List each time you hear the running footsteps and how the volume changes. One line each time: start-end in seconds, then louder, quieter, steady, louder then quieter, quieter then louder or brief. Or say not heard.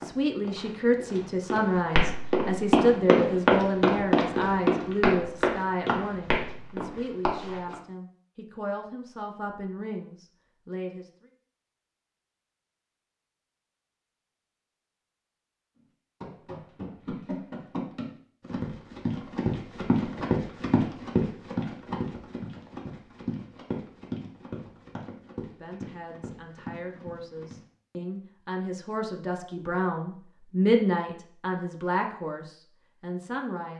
0.0-7.8 louder then quieter
16.2-27.6 louder then quieter.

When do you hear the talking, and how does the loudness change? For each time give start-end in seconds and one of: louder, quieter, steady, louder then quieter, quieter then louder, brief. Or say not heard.
0.0-11.1 quieter
25.6-33.7 louder then quieter.